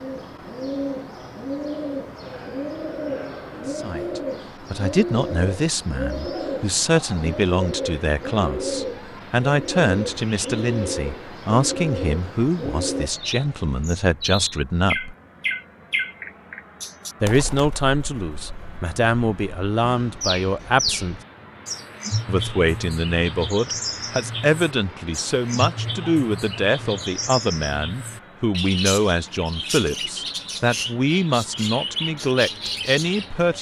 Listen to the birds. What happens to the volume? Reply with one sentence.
The volume of the birds stays about the same.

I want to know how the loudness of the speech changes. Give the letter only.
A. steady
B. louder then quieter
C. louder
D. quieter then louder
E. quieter
A.